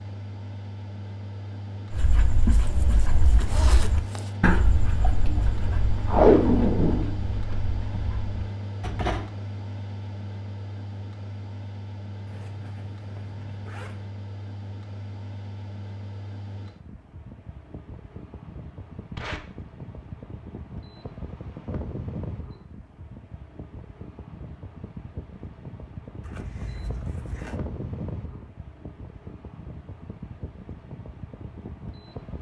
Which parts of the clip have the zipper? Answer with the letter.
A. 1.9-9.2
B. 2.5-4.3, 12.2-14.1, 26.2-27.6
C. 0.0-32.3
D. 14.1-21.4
B.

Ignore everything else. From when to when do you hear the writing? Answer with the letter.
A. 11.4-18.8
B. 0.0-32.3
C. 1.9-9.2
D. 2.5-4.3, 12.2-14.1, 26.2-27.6
C.